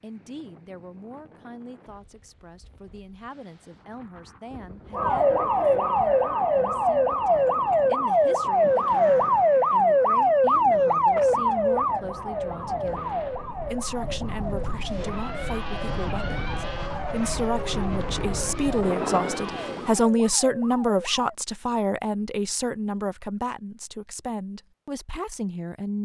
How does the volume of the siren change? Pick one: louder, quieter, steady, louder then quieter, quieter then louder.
quieter.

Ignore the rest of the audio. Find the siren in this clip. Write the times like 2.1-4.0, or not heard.
4.9-21.4.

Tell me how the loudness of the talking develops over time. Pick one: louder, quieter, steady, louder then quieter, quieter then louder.
louder.